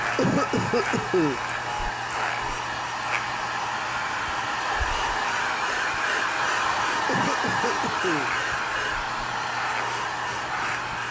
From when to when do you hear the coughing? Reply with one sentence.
The coughing can be heard from 0.1 to 1.4 s and from 7.0 to 8.3 s.